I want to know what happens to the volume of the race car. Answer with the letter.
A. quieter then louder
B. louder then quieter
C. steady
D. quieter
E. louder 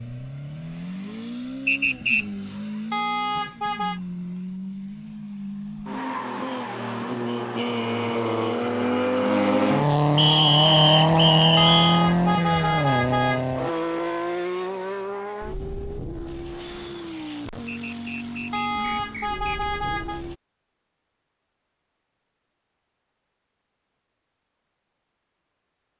B.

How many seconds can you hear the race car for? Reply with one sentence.
You can hear the race car for 20 seconds altogether.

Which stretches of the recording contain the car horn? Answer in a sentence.
The car horn can be heard from 2.9 to 4.0 s, from 11.6 to 13.4 s and from 18.5 to 20.2 s.